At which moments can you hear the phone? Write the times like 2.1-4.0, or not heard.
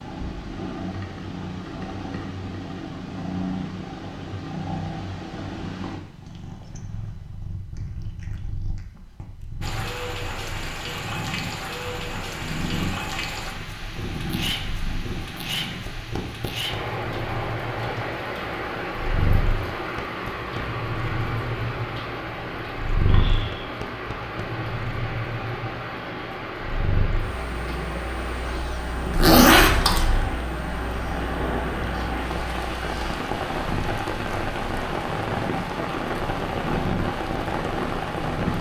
not heard.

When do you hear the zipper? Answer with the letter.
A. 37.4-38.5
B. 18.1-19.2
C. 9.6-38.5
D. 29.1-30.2
D.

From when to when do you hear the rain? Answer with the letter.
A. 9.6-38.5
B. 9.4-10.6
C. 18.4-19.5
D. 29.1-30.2
A.